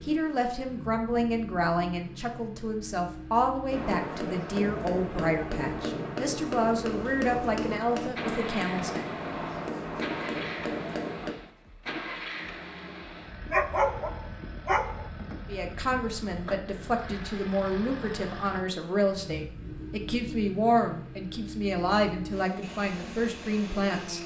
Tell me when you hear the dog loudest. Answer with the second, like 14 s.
14 s.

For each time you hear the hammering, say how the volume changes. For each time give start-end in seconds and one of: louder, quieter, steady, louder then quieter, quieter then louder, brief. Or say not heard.
3.7-11.3 steady.